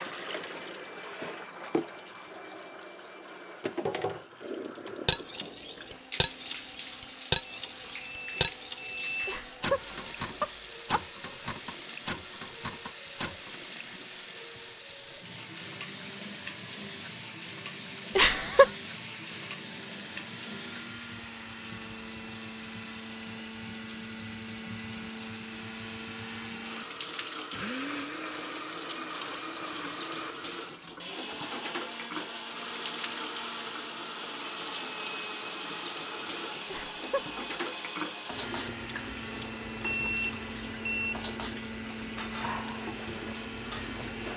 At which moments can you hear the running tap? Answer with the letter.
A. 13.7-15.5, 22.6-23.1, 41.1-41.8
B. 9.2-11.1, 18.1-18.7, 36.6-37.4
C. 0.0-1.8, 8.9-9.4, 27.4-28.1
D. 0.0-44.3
D.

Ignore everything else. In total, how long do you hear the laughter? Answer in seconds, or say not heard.
3 s.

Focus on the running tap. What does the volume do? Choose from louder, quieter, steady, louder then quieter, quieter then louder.
steady.